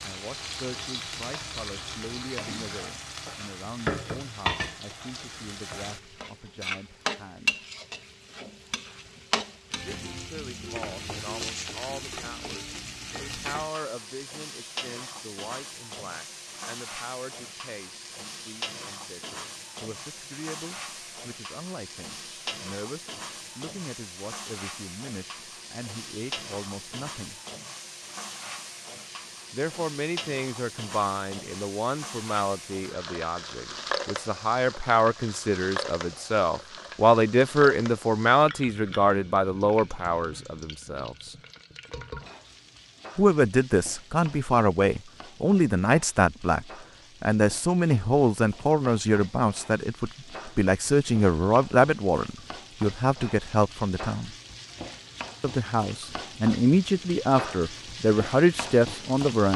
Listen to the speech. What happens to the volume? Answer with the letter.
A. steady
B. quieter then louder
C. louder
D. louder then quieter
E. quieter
C.